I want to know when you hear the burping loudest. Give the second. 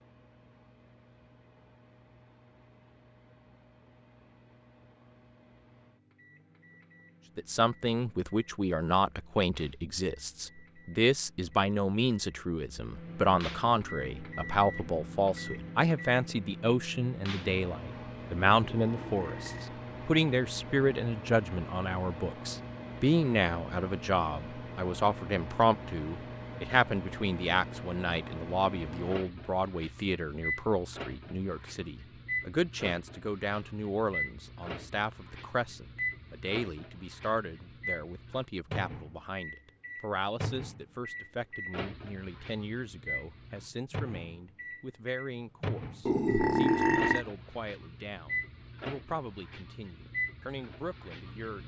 47 s.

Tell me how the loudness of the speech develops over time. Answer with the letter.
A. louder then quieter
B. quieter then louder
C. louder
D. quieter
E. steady
D.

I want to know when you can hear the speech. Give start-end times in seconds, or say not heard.
7.3-51.6.